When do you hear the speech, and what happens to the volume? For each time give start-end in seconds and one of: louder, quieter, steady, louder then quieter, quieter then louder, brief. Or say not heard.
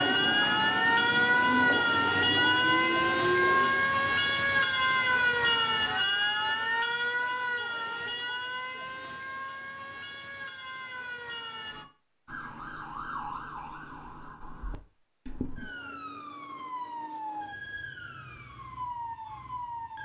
not heard.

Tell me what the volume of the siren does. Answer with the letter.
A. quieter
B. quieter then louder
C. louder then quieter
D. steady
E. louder
A.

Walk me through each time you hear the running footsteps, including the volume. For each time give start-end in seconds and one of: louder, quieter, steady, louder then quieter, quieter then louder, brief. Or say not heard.
not heard.